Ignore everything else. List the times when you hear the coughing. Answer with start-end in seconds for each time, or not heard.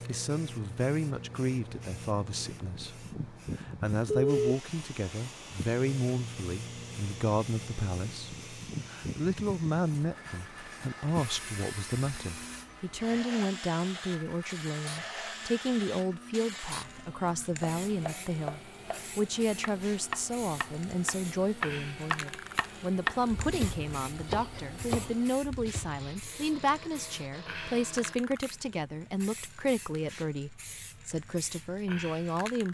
not heard.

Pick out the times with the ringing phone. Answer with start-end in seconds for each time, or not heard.
4.1-4.5.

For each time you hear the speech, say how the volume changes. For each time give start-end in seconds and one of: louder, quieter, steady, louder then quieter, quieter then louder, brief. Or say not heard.
0.1-32.7 steady.